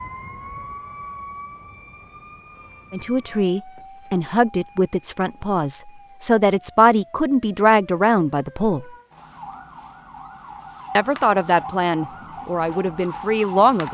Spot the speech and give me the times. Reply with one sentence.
You can hear the speech from 2.9 to 8.8 s and from 10.9 to 13.8 s.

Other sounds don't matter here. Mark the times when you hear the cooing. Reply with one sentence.
You can't hear the cooing here.